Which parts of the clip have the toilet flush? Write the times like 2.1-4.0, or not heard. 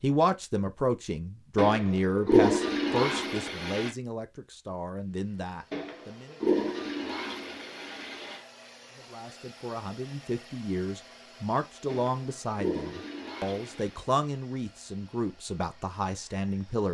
1.6-3.9, 5.7-8.4, 11.8-14.0.